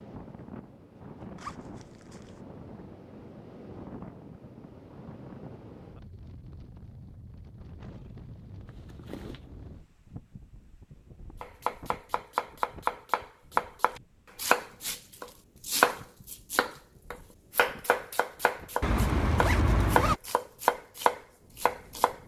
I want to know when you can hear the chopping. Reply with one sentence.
You can hear the chopping from 11.4 to 22.2 s.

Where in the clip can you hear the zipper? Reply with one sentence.
The zipper can be heard from 1.4 to 2.4 s, from 8.7 to 9.4 s and from 18.8 to 20.2 s.